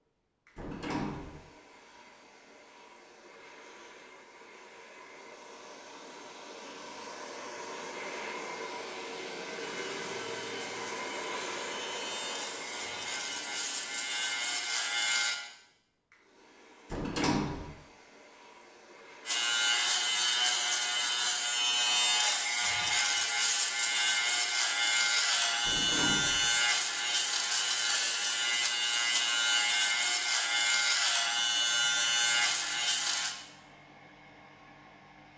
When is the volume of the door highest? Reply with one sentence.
The volume of the door peaks at 17 seconds.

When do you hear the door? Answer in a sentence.
The door can be heard from 0.6 to 1.4 s, from 16.9 to 17.8 s and from 25.6 to 26.5 s.